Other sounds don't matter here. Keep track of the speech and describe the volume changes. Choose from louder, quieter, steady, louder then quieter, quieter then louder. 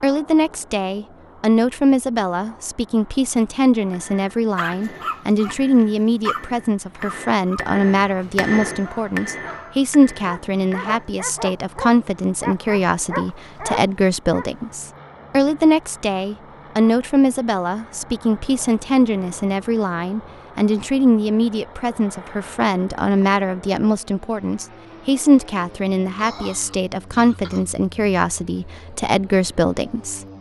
steady.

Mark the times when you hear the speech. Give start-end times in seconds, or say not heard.
0.0-30.2.